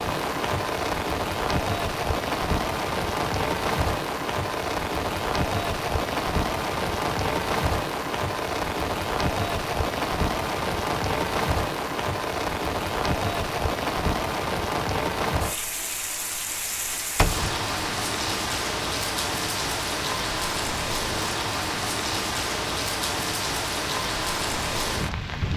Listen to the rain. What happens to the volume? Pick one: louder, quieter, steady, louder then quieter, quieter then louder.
steady.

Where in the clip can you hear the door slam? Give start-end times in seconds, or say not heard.
16.9-17.9.